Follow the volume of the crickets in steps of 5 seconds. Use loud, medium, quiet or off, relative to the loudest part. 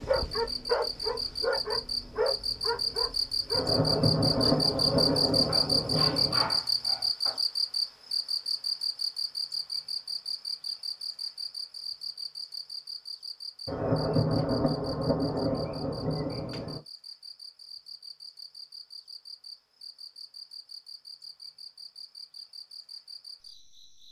loud, loud, medium, quiet, quiet.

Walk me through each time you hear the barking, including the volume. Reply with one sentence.
You can hear the barking from 0.0 to 7.4 s, getting quieter.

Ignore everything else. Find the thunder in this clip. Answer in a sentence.
The thunder can be heard from 3.5 to 6.6 s and from 13.7 to 16.8 s.